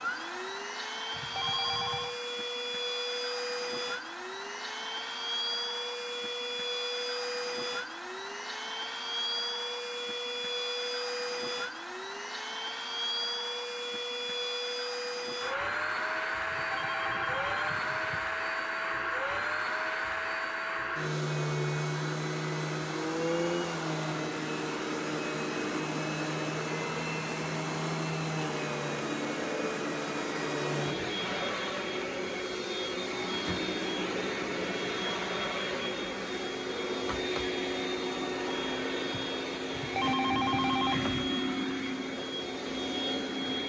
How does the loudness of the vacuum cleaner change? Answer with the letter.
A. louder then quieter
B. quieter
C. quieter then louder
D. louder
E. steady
E.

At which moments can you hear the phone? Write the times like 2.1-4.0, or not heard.
1.1-2.2, 16.4-18.2, 39.7-41.2.